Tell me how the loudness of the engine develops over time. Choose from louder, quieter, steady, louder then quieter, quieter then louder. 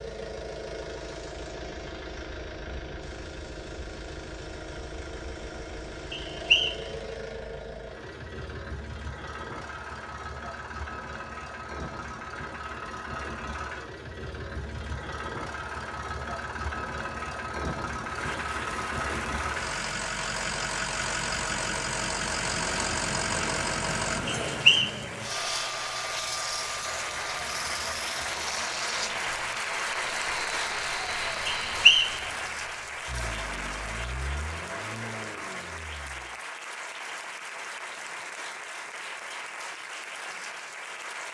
louder then quieter.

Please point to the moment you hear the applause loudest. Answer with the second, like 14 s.
30 s.